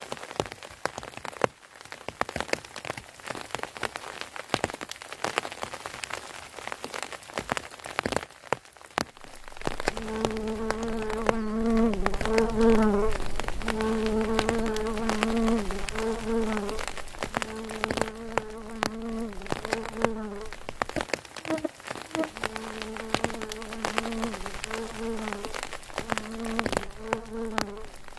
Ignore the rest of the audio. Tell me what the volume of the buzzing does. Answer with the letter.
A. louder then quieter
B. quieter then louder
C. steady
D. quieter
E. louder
D.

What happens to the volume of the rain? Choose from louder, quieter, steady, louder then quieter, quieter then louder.
steady.